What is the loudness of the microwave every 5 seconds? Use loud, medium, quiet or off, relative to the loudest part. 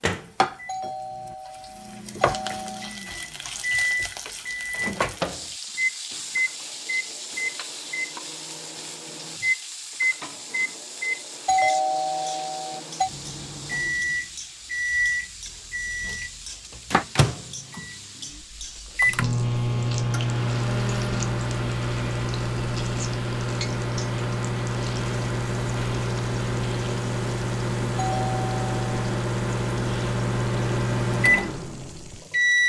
medium, medium, medium, loud, loud, loud, loud.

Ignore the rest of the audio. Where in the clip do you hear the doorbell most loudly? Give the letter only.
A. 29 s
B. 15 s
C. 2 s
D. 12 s
D.